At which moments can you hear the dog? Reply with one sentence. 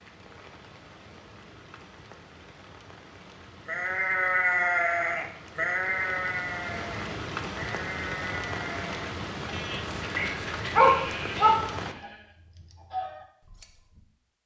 You can hear the dog from 10.1 to 11.6 s.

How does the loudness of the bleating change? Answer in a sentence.
The volume of the bleating goes down.